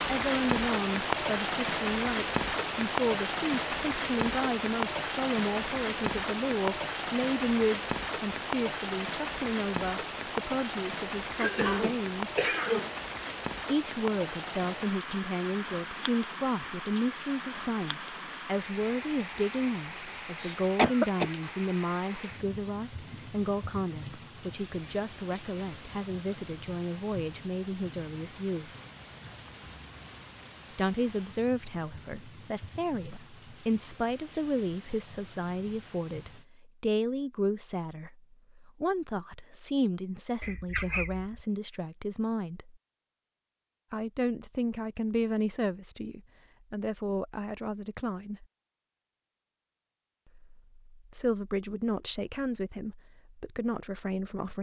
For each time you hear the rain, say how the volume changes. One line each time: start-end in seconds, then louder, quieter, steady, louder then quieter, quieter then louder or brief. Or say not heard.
0.0-36.5 quieter.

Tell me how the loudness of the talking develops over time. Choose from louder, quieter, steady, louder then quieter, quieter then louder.
steady.